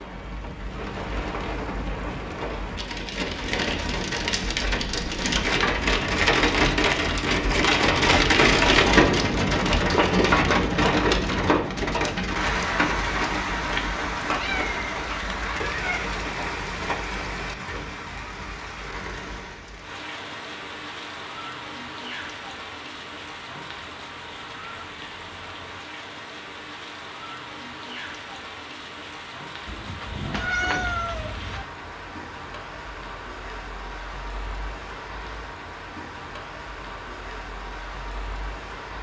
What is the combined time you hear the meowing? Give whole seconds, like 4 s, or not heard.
4 s.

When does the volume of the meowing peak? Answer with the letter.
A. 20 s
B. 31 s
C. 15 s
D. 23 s
B.